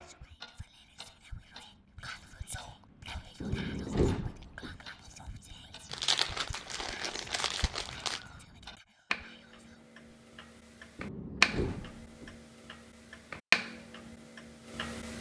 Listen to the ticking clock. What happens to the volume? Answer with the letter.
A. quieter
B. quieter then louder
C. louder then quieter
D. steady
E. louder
E.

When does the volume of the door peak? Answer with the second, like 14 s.
4 s.